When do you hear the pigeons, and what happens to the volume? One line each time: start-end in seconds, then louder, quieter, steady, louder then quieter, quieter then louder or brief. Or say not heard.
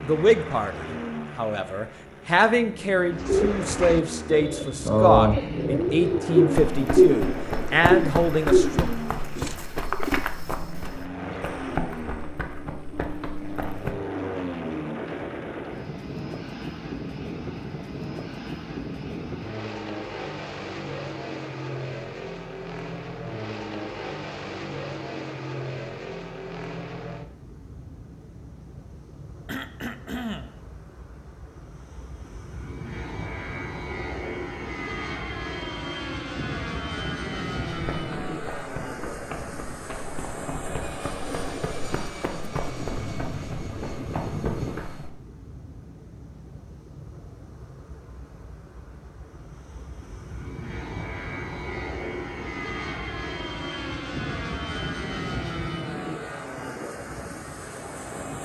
3.1-10.2 louder then quieter.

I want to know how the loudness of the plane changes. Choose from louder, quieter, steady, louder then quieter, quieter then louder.
steady.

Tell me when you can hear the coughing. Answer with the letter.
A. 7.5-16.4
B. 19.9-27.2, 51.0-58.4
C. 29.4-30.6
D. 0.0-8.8
C.